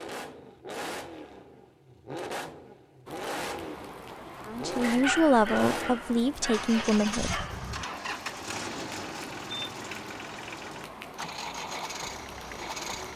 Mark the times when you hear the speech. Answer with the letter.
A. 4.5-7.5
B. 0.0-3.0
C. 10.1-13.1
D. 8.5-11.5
A.